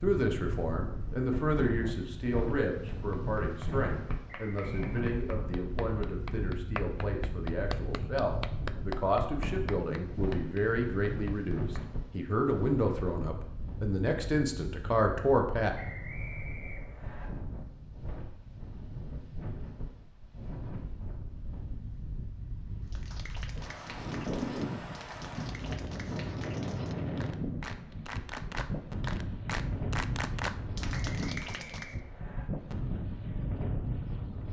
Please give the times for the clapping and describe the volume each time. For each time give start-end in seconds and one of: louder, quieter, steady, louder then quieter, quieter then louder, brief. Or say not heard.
2.9-11.8 louder then quieter
22.9-31.9 louder.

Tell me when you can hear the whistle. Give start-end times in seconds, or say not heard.
4.2-4.9, 15.8-17.3, 31.1-32.5.